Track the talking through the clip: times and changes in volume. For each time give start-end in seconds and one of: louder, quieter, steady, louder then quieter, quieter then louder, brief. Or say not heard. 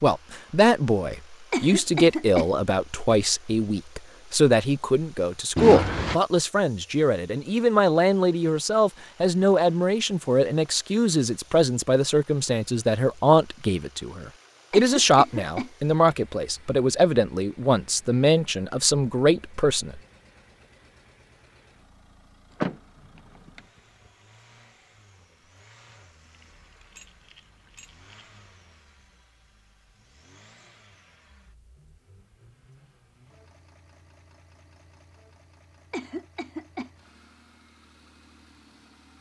0.0-20.0 steady.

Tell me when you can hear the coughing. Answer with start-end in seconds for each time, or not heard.
1.5-2.5, 14.7-15.7, 35.9-36.9.